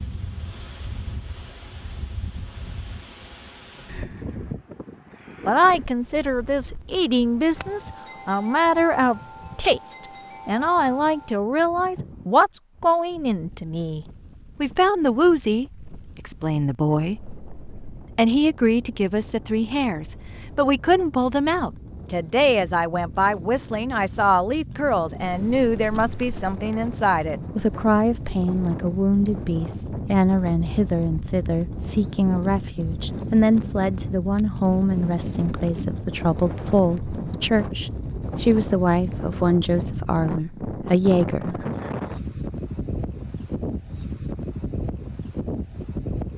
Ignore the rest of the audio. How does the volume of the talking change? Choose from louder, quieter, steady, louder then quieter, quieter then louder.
steady.